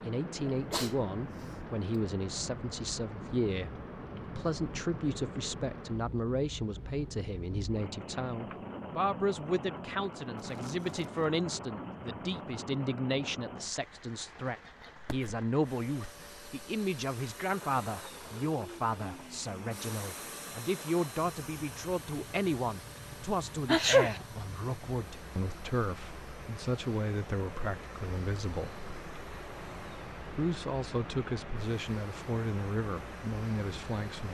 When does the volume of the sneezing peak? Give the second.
24 s.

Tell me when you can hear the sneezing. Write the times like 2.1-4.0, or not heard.
0.5-0.9, 14.9-15.4, 23.6-24.2.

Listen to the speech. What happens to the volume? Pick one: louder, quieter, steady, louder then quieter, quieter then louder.
steady.